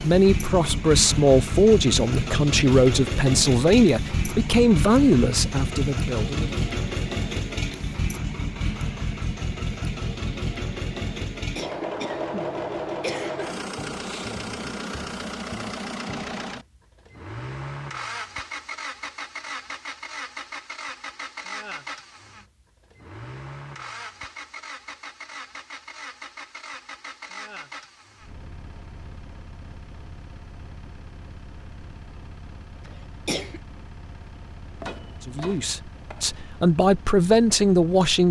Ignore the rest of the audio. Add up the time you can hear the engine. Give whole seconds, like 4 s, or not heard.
38 s.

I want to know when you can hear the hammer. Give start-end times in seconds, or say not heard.
34.8-36.4.